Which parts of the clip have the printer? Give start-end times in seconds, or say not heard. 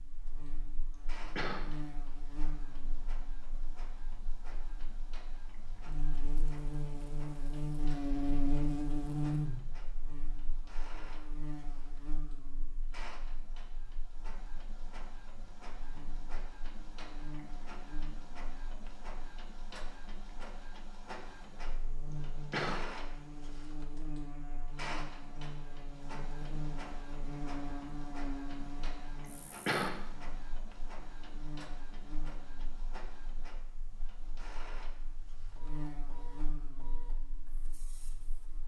0.0-38.6.